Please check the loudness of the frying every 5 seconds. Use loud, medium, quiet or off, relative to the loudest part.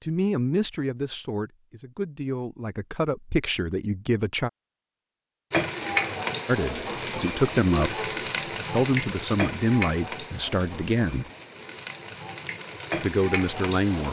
off, loud, medium.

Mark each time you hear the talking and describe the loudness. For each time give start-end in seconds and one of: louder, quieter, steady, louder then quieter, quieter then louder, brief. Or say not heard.
0.0-4.5 quieter then louder
6.5-8.0 brief
8.7-11.3 brief
13.0-14.0 brief.